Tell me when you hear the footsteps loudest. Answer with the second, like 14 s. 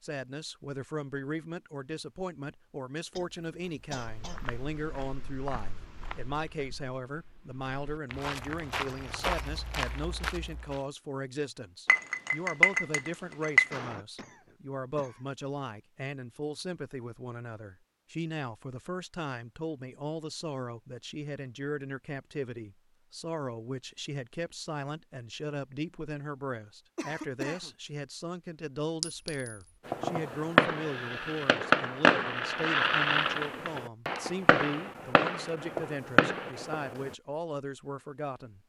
9 s.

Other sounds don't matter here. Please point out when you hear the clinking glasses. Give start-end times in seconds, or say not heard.
11.8-13.8, 29.0-29.6.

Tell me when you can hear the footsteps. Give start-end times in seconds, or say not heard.
4.0-10.8.